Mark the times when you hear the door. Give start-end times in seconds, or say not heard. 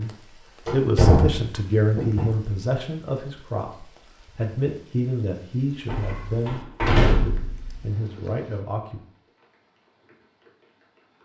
0.7-2.4, 5.8-7.8.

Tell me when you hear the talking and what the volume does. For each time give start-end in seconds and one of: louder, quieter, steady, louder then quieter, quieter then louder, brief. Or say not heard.
0.0-9.0 quieter.